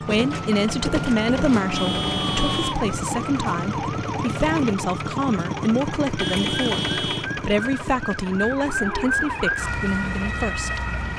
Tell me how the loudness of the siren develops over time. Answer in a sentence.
The loudness of the siren goes down, then up.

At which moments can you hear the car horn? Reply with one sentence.
You can hear the car horn from 1.8 to 2.8 s and from 6.2 to 7.3 s.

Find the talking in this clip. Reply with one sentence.
You can hear the talking from 0.0 to 10.8 s.